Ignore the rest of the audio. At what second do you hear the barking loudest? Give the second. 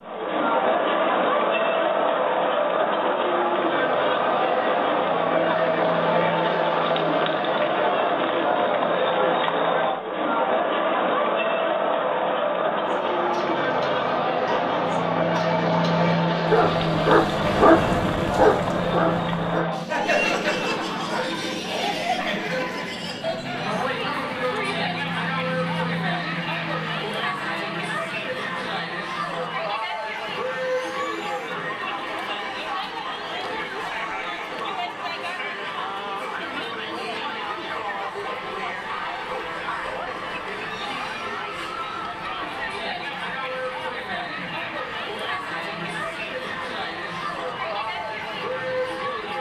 18 s.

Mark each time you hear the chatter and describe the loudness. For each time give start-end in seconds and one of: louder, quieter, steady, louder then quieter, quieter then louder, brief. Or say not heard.
0.0-49.3 quieter.